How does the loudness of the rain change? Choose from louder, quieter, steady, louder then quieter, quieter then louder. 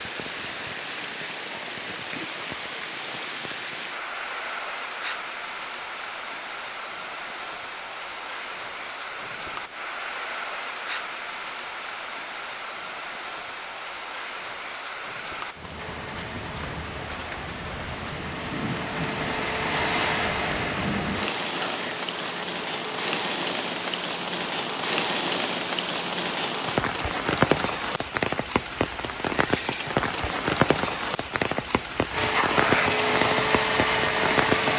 louder.